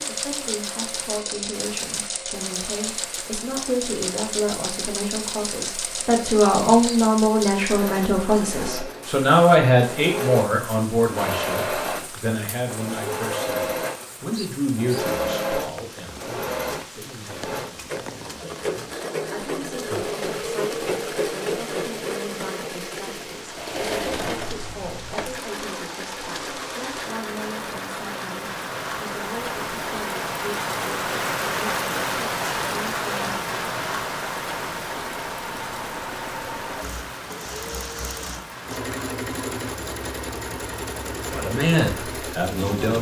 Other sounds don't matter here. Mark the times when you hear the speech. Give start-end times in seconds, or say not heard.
0.1-33.5, 41.3-42.9.